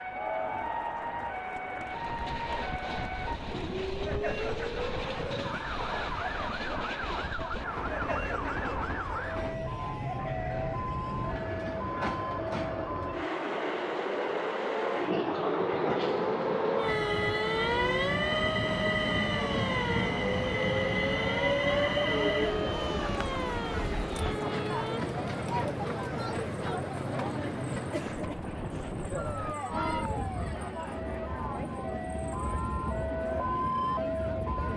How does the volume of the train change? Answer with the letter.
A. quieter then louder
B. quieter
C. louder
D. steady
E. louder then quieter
E.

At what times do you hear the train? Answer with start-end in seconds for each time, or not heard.
1.8-34.7.